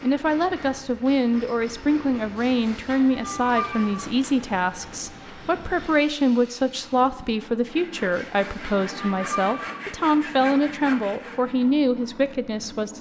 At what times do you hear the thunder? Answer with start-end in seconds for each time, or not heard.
not heard.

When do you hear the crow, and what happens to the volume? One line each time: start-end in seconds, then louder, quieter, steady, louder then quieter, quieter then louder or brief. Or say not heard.
not heard.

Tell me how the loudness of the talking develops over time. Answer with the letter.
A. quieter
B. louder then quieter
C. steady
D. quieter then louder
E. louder
C.